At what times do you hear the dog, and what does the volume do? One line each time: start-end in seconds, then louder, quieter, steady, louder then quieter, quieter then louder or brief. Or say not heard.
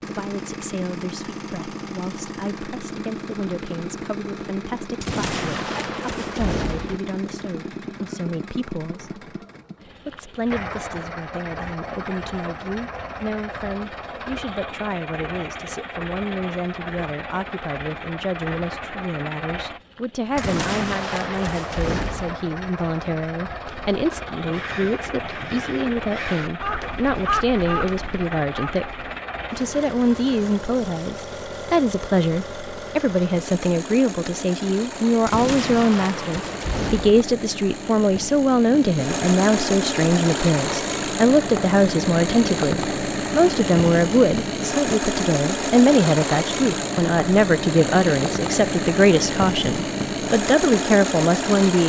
not heard.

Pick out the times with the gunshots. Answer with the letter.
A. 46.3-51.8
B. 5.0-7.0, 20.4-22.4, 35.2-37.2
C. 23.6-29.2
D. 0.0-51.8
B.